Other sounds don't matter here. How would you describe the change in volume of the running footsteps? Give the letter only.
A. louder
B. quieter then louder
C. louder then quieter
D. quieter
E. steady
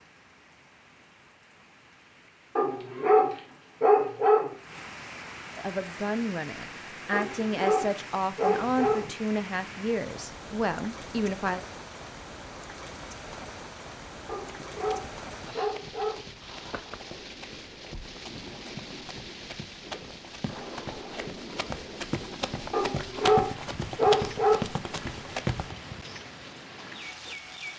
A.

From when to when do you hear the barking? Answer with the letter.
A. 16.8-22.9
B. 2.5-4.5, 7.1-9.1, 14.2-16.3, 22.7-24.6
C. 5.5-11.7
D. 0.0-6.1
B.